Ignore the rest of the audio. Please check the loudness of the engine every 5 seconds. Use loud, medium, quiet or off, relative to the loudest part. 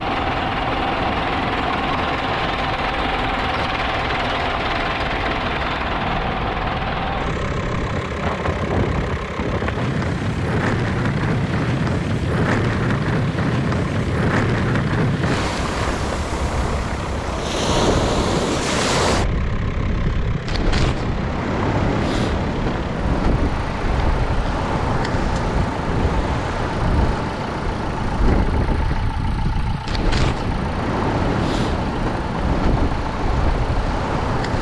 loud, loud, medium, medium, medium, medium, medium.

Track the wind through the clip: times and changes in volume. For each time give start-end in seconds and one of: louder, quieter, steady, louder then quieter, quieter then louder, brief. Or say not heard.
0.0-34.5 louder.